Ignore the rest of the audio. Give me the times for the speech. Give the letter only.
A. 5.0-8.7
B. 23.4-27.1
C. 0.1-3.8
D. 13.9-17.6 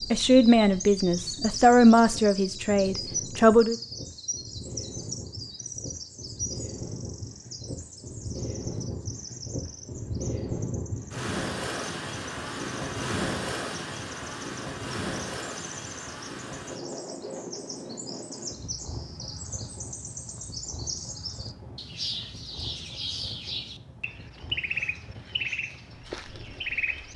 C.